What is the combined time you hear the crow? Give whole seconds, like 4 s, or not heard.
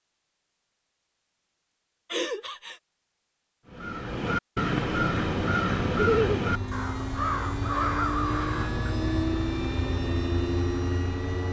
5 s.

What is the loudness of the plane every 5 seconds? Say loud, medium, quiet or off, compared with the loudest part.
off, loud, loud.